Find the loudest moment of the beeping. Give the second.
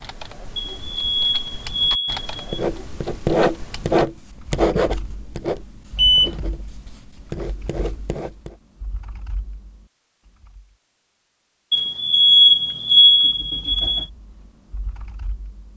12 s.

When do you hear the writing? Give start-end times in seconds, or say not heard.
2.5-8.5.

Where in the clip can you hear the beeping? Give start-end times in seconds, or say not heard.
0.6-2.6, 6.0-6.4, 11.7-14.1.